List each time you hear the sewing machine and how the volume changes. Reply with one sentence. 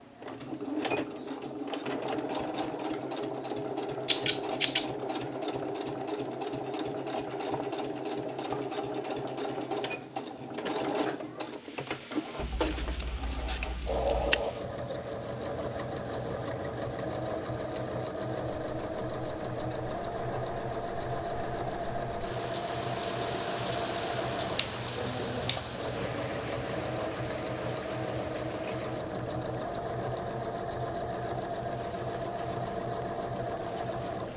You can hear the sewing machine from 0.0 to 34.3 s, at a steady volume.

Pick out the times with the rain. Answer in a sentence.
You can hear the rain from 11.5 to 34.3 s.